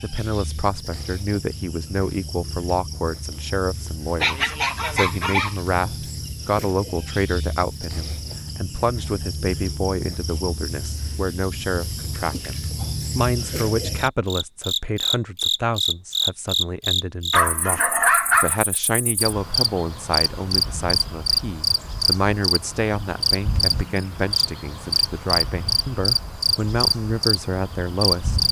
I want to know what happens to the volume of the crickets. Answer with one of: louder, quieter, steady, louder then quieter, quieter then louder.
louder.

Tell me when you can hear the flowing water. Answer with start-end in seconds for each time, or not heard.
not heard.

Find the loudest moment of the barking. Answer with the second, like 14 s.
18 s.